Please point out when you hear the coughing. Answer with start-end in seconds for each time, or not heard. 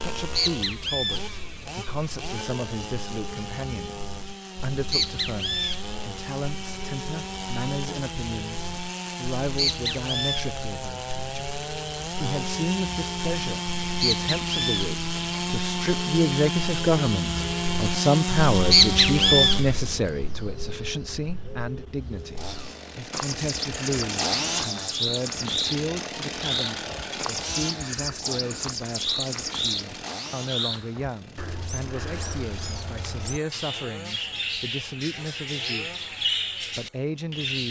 not heard.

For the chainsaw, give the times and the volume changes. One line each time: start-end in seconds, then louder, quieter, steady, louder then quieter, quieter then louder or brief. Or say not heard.
0.0-20.0 louder
22.1-37.4 quieter.